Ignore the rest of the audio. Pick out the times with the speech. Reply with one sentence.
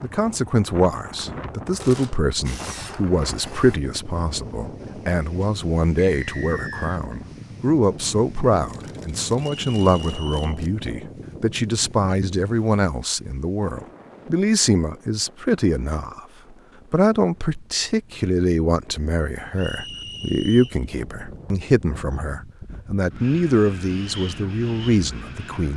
You can hear the speech from 0.0 to 16.2 s and from 16.9 to 25.7 s.